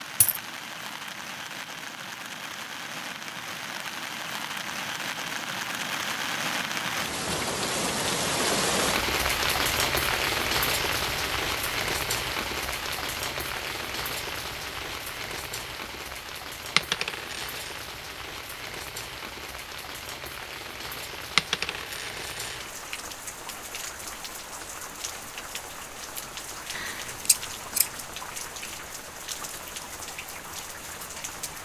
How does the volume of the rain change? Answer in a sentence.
The volume of the rain goes up, then down.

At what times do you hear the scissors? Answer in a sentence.
You can hear the scissors from 26.7 to 27.9 s.